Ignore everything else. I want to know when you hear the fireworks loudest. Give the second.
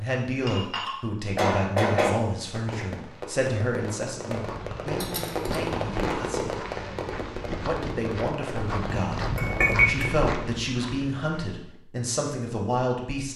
6 s.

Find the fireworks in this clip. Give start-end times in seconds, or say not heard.
2.4-10.2.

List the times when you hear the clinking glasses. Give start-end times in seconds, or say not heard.
0.5-2.1, 5.0-5.6, 9.2-10.1.